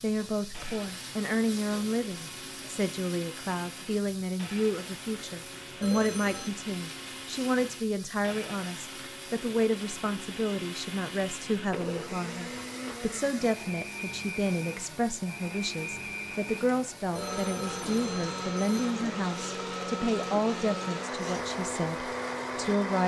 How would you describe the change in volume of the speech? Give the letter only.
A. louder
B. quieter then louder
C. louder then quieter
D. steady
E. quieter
D.